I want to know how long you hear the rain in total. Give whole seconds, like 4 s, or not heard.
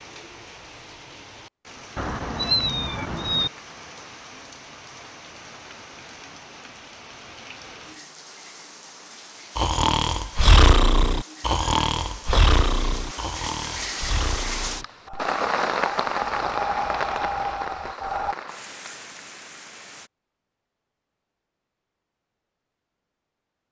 20 s.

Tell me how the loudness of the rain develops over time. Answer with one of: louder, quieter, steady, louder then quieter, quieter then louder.
louder.